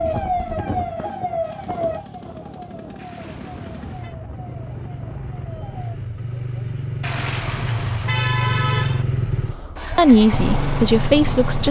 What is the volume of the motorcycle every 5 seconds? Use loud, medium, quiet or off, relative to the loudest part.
quiet, loud, loud.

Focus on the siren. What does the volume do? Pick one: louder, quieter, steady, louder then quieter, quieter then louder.
quieter.